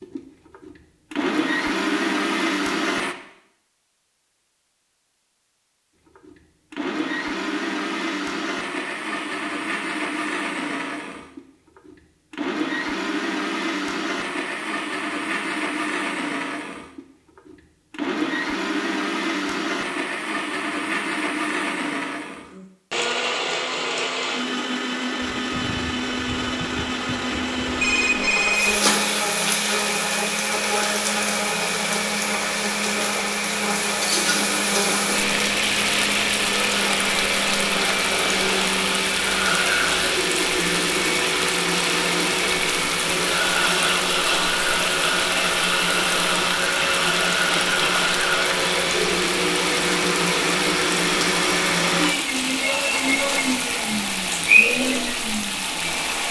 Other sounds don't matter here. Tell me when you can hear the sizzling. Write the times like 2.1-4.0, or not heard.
28.5-56.2.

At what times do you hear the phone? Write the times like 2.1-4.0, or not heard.
27.8-28.8.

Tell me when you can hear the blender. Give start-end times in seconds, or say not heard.
0.0-3.1, 6.2-56.2.